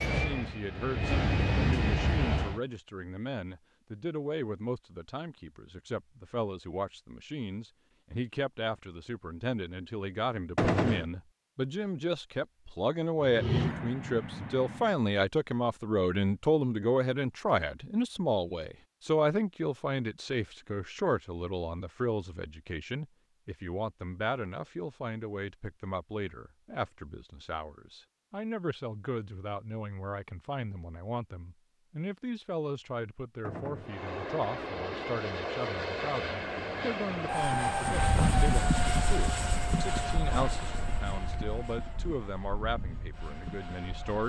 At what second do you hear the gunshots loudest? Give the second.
11 s.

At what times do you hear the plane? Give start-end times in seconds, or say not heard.
0.0-2.6, 13.2-14.9, 33.8-44.2.